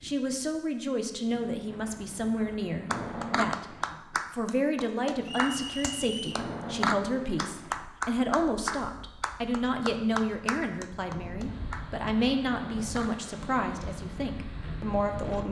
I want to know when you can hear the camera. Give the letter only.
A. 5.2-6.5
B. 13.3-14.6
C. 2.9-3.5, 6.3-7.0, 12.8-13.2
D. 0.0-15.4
C.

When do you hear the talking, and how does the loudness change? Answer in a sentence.
You can hear the talking from 0.0 to 15.4 s, at a steady volume.